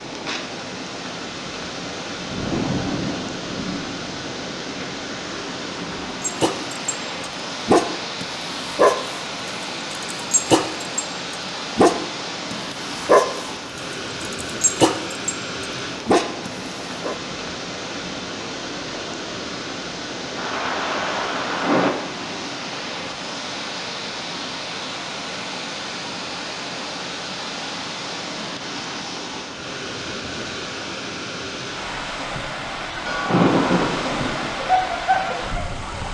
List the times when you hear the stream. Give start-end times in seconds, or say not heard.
0.0-36.0.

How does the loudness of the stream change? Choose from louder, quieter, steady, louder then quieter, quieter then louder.
steady.